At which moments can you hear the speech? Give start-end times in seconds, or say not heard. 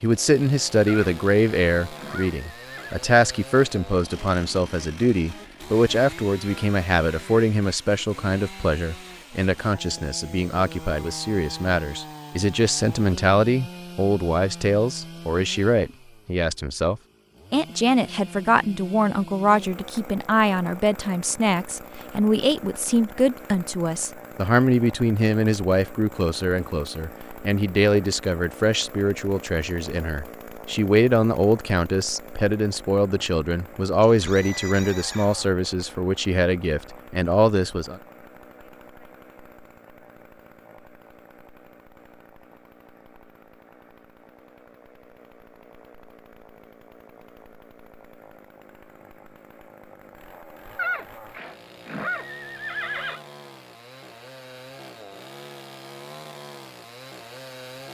0.0-38.0.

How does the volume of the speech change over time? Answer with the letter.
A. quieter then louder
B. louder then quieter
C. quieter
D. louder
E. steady
E.